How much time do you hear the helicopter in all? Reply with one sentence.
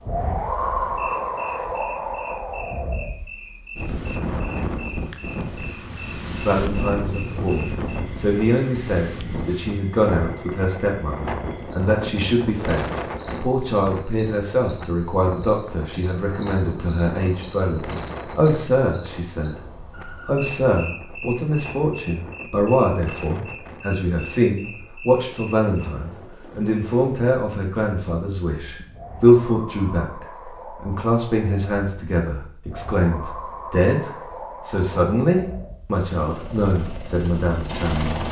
You can hear the helicopter for 2 seconds altogether.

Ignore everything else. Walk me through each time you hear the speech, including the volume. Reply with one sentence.
You can hear the speech from 6.5 to 38.2 s, at a steady volume.